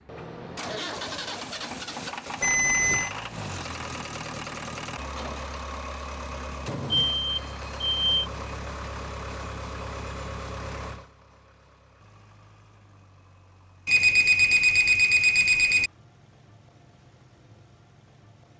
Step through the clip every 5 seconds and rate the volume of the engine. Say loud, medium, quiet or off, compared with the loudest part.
loud, loud, medium, quiet.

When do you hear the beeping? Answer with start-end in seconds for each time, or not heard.
2.4-3.1, 7.0-8.2, 13.8-15.9.